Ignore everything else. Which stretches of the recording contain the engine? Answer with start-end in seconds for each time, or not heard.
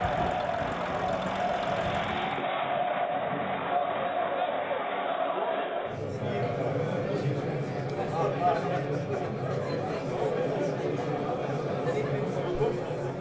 0.0-2.5.